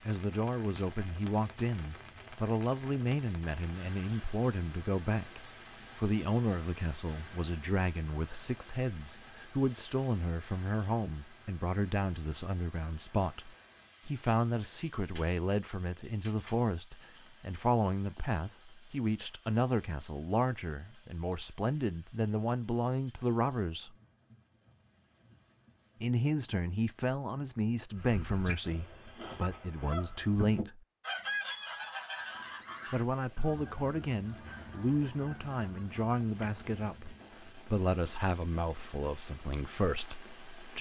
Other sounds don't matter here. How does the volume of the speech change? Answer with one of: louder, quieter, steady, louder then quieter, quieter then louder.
steady.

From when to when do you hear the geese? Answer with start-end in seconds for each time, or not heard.
27.9-37.2.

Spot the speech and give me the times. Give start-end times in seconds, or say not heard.
0.1-23.9, 26.0-30.8, 32.9-40.7.